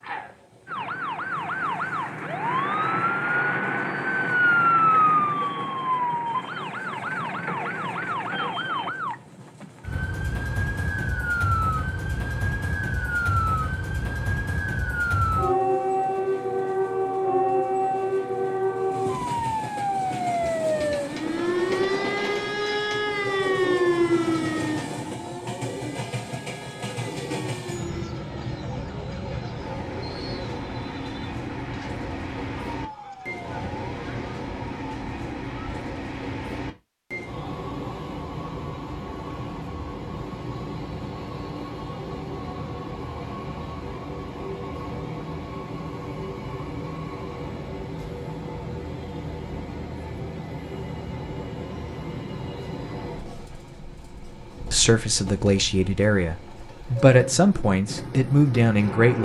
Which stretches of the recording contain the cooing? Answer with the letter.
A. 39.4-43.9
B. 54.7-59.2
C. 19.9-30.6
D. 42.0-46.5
C.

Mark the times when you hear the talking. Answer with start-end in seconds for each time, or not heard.
54.7-59.2.